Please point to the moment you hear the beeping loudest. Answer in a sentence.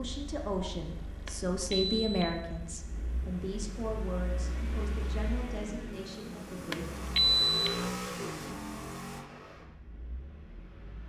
The loudest moment of the beeping is at 7 seconds.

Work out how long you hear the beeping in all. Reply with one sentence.
You can hear the beeping for 2 seconds altogether.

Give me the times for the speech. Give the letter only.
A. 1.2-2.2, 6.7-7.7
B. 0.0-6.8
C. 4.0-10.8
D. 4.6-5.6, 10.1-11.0
B.